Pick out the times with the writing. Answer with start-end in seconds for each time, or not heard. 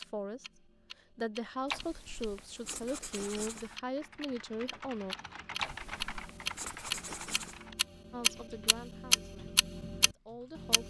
1.6-3.8, 5.5-7.7.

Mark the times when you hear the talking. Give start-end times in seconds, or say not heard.
0.0-5.2, 8.1-10.8.